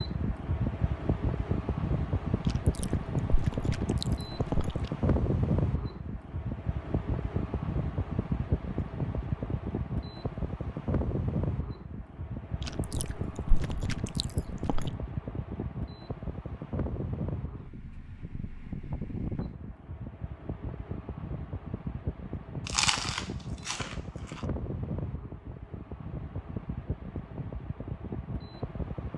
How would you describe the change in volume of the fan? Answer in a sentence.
The volume of the fan goes down.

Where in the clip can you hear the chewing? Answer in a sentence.
You can hear the chewing from 2.5 to 4.9 s, from 12.6 to 14.9 s and from 22.6 to 24.4 s.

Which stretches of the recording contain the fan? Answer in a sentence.
You can hear the fan from 0.0 to 29.1 s.